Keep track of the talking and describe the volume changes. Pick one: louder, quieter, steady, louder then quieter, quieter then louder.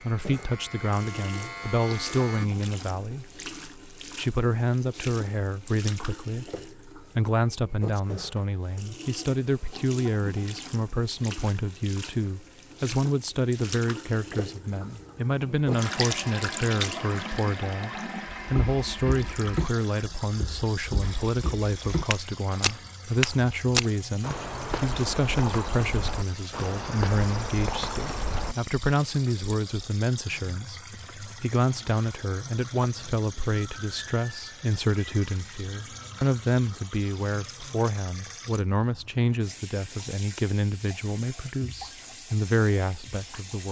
steady.